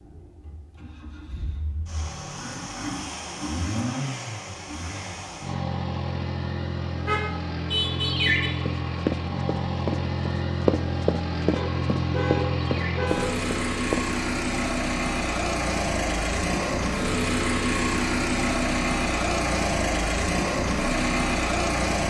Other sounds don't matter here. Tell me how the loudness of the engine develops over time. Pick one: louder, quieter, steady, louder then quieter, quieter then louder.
louder.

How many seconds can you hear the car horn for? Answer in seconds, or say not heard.
3 s.